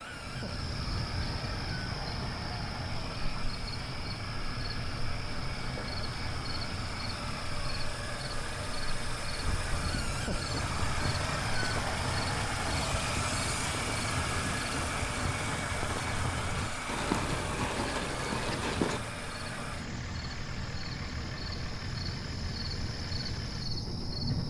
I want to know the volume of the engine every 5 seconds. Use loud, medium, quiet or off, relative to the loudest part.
medium, medium, loud, loud, medium.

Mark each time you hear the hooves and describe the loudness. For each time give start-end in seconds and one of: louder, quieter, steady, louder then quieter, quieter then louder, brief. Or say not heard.
9.4-19.0 louder.